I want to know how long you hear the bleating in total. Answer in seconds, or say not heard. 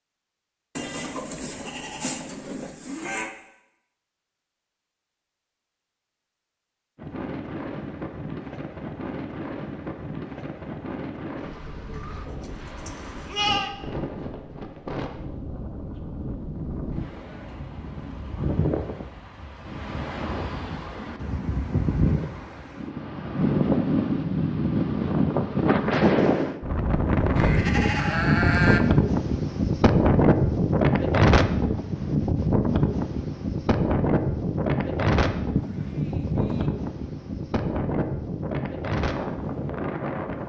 7 s.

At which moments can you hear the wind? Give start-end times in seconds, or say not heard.
7.0-40.4.